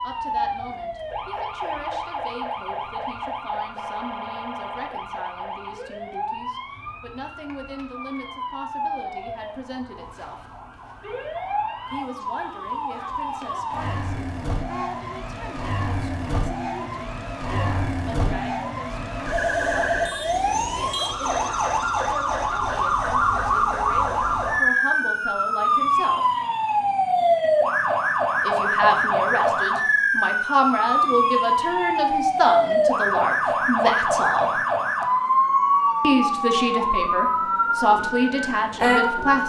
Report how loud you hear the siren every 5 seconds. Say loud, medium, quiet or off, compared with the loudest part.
medium, quiet, medium, medium, loud, loud, loud, loud.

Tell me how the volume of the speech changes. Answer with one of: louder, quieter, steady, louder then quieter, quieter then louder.
louder.